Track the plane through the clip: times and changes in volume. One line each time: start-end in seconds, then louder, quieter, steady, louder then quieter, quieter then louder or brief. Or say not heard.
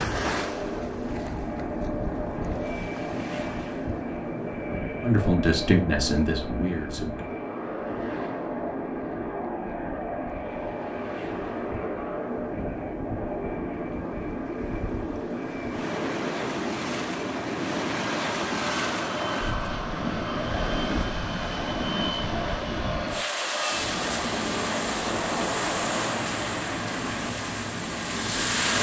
0.0-28.7 steady.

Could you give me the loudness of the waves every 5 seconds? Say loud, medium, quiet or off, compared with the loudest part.
medium, quiet, quiet, loud, loud, loud.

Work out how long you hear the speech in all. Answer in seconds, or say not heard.
2 s.